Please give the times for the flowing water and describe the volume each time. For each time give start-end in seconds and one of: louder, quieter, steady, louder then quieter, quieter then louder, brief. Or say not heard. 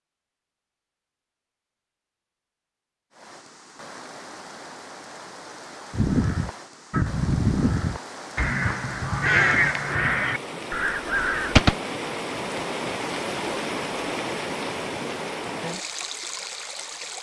3.1-17.1 louder.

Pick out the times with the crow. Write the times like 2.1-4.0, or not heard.
5.9-11.8.